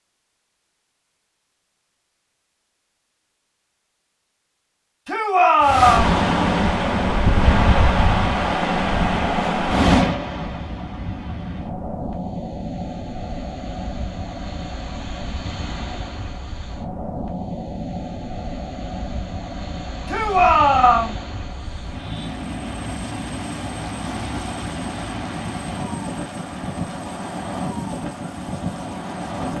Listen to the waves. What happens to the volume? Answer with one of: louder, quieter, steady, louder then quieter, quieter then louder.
quieter.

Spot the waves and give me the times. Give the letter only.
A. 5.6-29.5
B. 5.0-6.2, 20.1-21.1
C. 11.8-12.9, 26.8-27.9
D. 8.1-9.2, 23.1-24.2
A.